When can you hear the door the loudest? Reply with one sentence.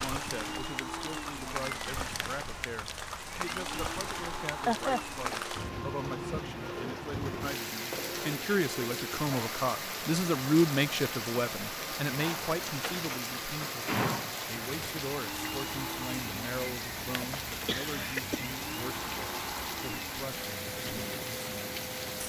The loudest moment of the door is at 14 seconds.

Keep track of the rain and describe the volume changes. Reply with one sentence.
The volume of the rain stays about the same.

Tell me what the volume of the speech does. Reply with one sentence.
The loudness of the speech goes up, then down.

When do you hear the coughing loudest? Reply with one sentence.
The volume of the coughing peaks at 5 seconds.